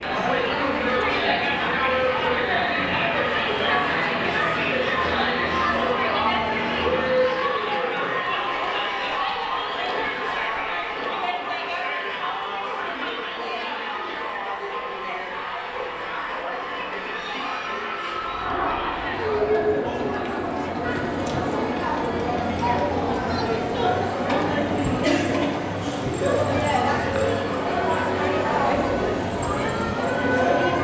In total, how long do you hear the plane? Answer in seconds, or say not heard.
20 s.